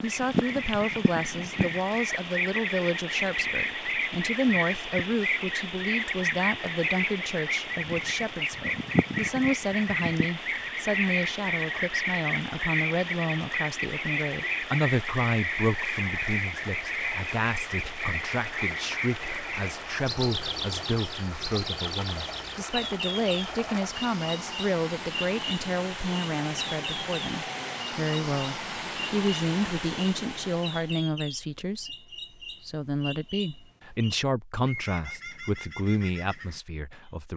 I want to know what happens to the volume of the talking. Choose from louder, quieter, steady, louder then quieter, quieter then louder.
steady.